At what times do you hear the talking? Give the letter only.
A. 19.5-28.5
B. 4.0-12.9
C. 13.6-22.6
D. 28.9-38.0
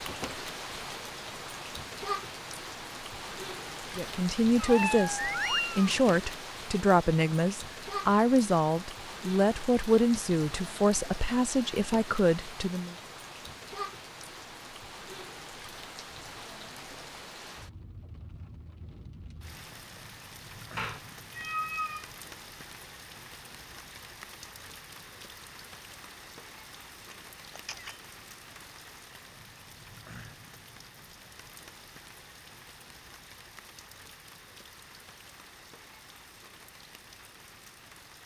B.